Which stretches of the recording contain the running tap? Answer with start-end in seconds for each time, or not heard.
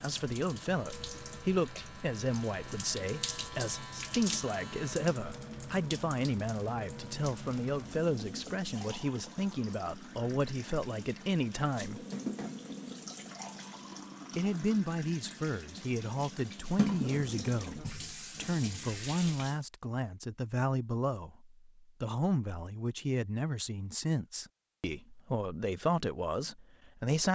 0.0-19.6.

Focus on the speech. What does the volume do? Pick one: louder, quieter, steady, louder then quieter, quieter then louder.
steady.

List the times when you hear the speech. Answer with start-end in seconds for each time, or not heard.
0.0-12.0, 14.3-27.3.